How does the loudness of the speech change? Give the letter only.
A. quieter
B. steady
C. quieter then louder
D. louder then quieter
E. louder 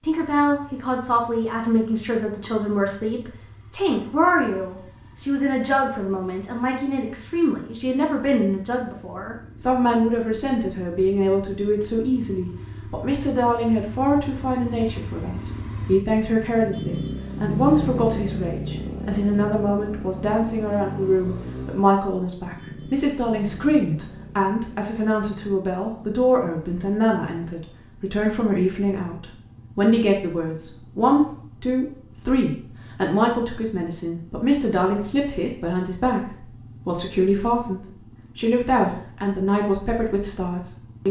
B.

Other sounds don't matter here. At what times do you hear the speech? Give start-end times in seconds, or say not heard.
0.0-41.0.